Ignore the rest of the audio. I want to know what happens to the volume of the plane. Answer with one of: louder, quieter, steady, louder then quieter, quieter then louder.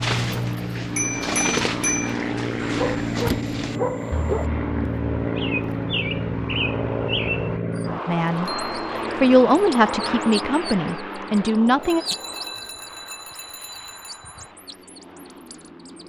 quieter.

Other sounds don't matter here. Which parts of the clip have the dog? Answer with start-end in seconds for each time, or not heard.
2.6-4.5.